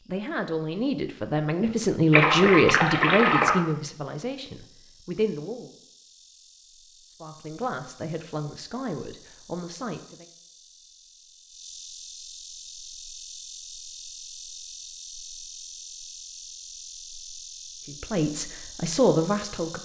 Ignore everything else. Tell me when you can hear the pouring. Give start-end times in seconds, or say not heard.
2.1-3.6.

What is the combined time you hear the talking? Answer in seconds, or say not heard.
11 s.